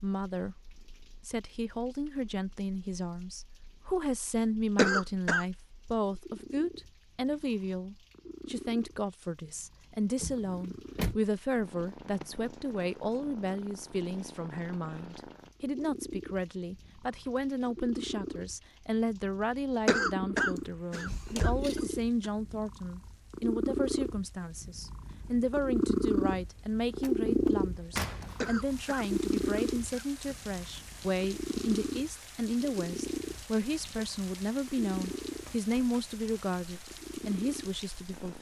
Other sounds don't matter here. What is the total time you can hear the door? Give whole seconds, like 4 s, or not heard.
4 s.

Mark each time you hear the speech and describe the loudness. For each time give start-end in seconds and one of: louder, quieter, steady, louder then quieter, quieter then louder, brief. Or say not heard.
0.0-38.3 steady.